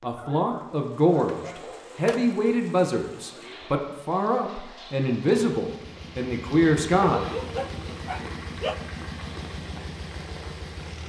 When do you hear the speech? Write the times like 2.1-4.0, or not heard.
0.0-7.3.